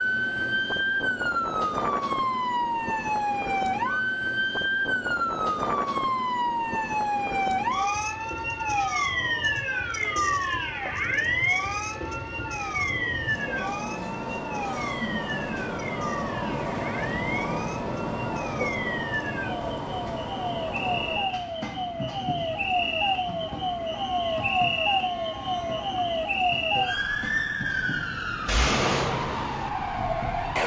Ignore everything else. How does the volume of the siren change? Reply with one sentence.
The loudness of the siren goes down, then up.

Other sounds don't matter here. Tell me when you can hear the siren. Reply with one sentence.
You can hear the siren from 0.0 to 30.6 s.